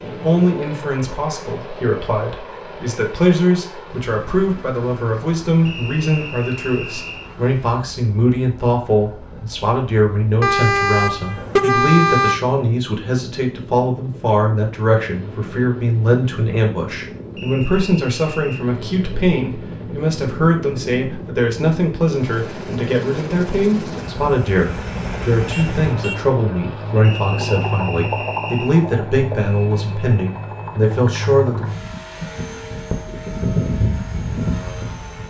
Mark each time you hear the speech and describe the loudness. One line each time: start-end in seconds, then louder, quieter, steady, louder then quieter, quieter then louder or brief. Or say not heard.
0.0-31.6 steady.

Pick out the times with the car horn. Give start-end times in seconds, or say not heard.
10.4-12.4, 25.5-26.2.